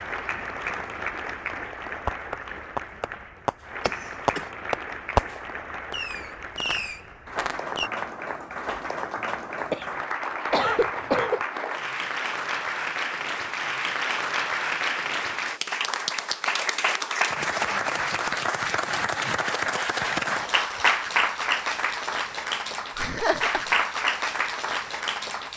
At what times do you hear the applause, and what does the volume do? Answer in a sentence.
The applause can be heard from 0.0 to 25.5 s, getting louder.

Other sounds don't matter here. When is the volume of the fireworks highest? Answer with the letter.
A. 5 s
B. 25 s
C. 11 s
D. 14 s
A.